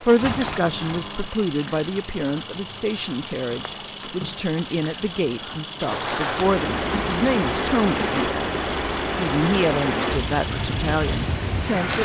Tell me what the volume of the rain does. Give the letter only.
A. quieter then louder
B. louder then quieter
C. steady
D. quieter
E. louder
E.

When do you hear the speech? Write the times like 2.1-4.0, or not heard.
0.0-12.0.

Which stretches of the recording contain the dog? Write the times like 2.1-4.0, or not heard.
not heard.